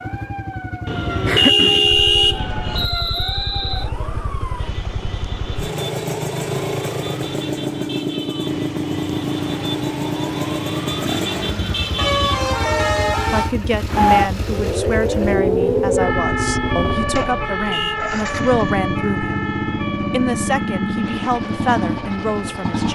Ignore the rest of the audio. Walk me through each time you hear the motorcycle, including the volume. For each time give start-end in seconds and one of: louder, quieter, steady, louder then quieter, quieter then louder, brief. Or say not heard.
0.0-22.9 steady.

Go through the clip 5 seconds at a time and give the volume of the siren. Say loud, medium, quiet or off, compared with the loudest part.
medium, medium, loud, loud, medium.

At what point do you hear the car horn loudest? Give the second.
2 s.